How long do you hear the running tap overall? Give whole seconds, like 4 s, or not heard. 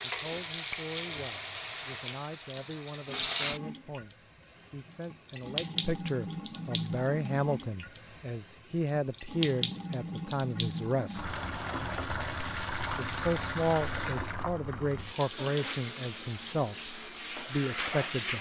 18 s.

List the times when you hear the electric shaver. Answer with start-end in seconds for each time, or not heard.
not heard.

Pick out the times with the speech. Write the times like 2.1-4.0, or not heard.
0.0-11.3, 12.9-18.3.